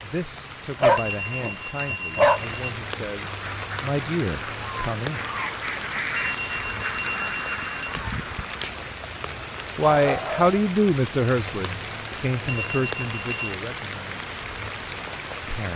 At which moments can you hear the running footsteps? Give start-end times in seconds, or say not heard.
not heard.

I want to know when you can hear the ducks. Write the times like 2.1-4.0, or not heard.
3.2-8.8.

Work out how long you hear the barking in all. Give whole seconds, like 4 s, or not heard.
2 s.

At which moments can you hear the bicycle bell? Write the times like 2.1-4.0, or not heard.
0.9-2.8, 6.2-8.0, 12.4-13.6.